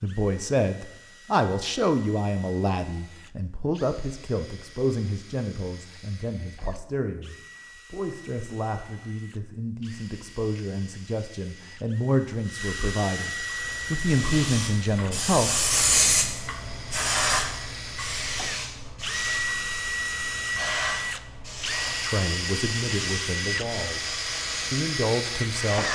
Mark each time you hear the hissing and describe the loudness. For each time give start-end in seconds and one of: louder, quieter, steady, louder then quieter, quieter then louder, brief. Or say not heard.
13.4-25.9 quieter.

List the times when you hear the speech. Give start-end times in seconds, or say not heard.
0.0-15.7, 21.9-25.9.